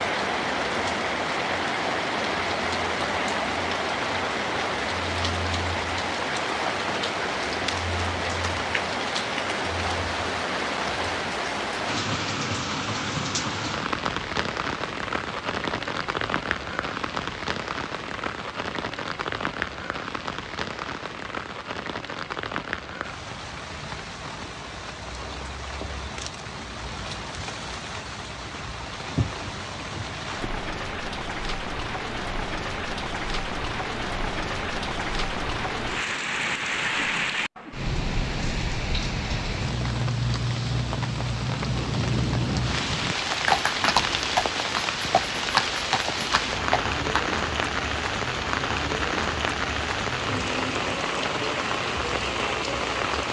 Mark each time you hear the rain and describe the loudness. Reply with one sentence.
The rain can be heard from 0.0 to 53.2 s, getting quieter then louder.